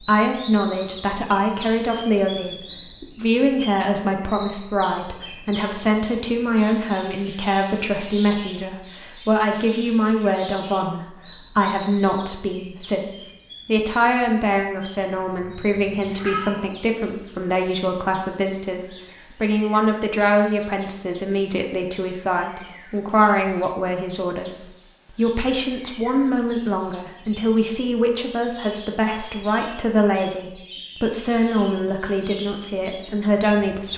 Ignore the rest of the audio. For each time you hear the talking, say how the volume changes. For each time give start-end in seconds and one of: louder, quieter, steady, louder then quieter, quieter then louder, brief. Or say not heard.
0.0-33.9 steady.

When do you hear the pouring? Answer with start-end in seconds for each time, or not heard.
not heard.